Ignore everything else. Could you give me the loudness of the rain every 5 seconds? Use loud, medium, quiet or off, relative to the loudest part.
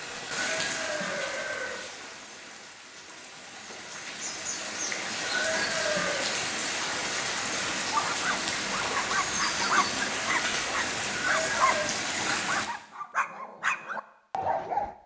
medium, loud, loud.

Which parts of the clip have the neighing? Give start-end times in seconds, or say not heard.
0.4-1.9, 5.2-6.3, 11.2-11.9.